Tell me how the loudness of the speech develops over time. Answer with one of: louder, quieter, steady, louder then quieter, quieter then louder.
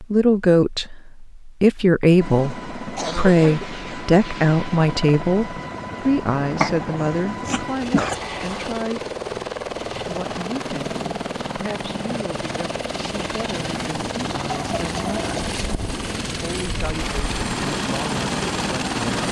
quieter.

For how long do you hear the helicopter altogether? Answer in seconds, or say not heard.
17 s.